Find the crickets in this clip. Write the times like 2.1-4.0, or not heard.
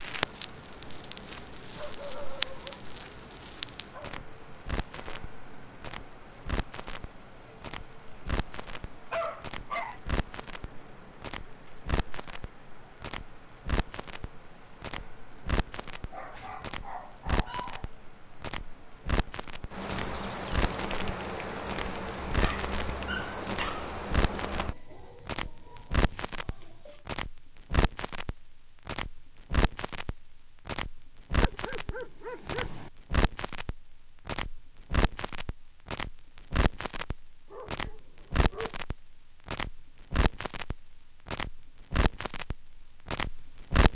0.0-27.1.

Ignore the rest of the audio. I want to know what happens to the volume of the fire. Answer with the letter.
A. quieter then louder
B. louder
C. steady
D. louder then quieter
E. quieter
C.